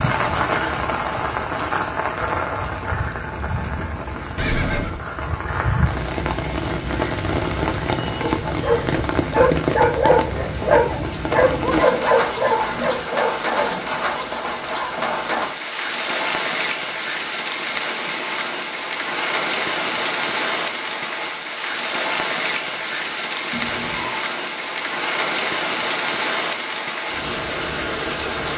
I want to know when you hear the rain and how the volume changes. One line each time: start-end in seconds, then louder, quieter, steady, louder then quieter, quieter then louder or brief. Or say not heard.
0.0-28.5 steady.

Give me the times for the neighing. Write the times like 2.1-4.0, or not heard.
4.3-5.0, 11.9-13.1, 23.5-24.2.